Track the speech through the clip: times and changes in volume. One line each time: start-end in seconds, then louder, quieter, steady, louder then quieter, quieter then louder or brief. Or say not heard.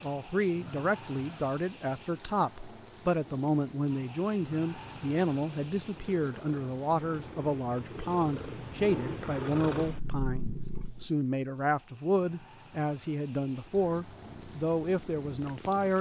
0.0-15.9 steady.